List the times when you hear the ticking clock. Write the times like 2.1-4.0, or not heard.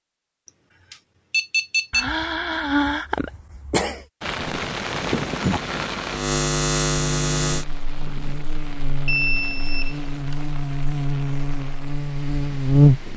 not heard.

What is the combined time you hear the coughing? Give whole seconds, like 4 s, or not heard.
2 s.